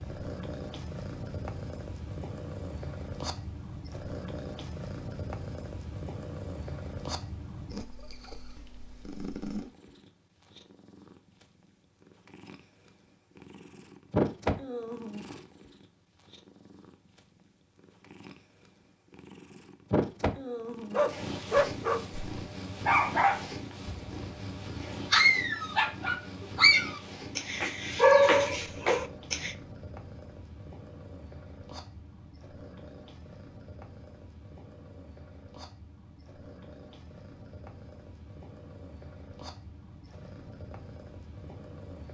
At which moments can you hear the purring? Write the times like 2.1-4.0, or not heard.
0.0-42.0.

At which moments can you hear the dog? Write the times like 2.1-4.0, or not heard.
20.9-29.6.